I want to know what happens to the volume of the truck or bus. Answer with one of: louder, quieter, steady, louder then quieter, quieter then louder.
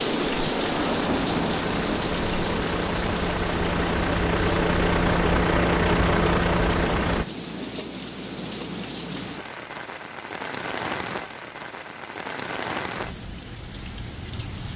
louder.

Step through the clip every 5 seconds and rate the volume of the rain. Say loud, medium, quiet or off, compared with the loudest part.
loud, medium, medium.